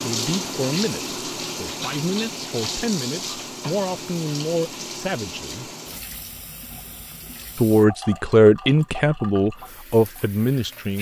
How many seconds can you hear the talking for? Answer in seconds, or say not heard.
9 s.